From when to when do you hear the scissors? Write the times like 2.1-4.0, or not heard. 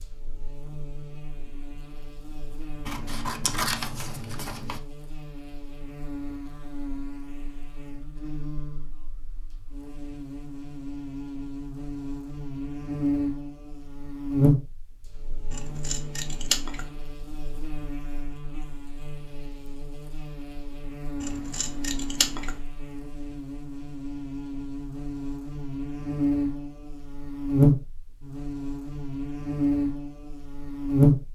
2.9-4.8, 15.5-16.9, 21.2-22.6.